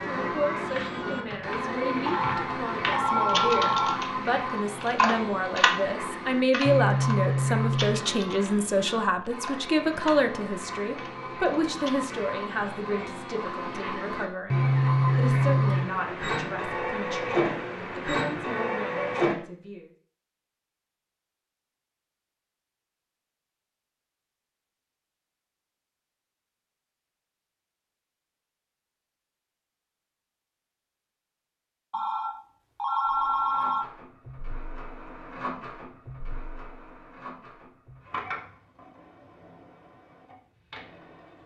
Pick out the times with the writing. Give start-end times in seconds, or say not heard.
not heard.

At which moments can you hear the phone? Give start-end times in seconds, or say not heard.
2.0-4.0, 31.9-33.9.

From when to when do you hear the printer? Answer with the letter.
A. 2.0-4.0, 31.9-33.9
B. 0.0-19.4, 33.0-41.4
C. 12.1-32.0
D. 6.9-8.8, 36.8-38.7
B.